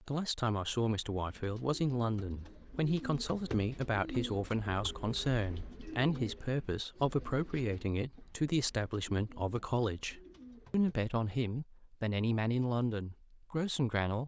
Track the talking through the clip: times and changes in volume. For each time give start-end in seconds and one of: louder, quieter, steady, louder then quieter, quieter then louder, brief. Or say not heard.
0.1-14.2 steady.